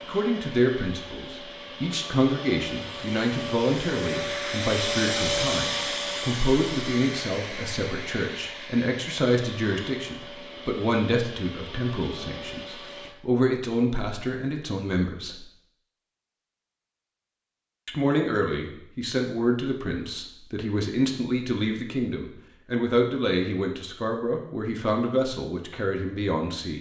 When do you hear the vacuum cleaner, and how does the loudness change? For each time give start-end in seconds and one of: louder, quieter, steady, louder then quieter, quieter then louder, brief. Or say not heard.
0.0-13.2 louder then quieter.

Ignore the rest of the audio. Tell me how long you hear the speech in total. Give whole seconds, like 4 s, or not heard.
24 s.